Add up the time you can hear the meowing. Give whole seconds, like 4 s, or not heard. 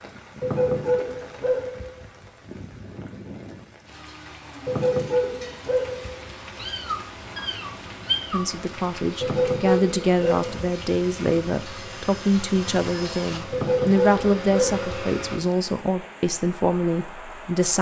2 s.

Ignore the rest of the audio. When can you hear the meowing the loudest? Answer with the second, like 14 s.
8 s.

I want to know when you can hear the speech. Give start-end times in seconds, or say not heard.
8.3-17.7.